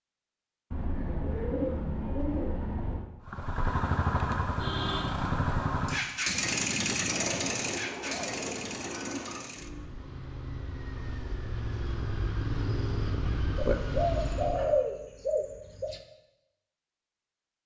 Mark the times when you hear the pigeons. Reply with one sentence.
The pigeons can be heard from 0.7 to 3.0 s, from 7.0 to 9.4 s and from 13.6 to 16.0 s.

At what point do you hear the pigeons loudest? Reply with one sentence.
The loudest moment of the pigeons is at 15 seconds.